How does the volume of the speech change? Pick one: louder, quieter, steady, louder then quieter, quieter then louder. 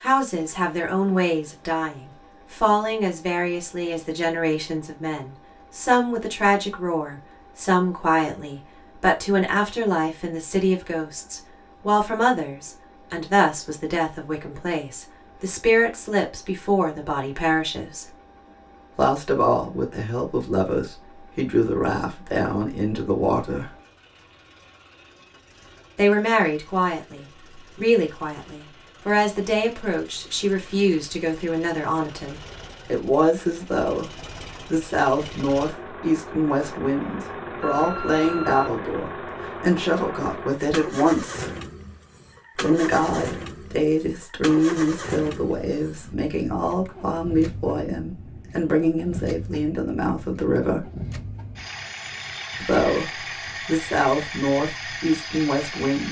steady.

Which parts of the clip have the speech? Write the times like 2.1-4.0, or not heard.
0.0-18.1, 18.9-23.8, 25.9-41.5, 42.5-50.9, 52.6-56.0.